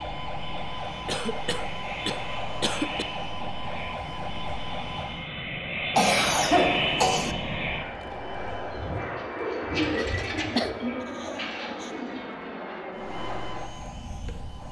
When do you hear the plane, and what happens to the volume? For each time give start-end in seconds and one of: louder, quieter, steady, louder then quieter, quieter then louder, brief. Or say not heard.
0.0-14.6 louder then quieter.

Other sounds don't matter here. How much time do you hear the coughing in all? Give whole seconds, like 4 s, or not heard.
5 s.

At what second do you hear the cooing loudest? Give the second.
10 s.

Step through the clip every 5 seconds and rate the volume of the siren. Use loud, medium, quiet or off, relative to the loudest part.
loud, medium, medium.